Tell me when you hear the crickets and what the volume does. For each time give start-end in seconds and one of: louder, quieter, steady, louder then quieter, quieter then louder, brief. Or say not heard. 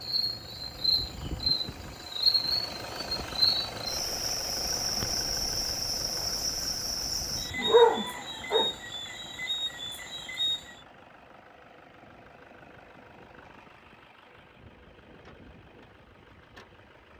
0.0-10.8 quieter.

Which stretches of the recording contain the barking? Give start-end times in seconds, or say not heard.
7.5-8.7.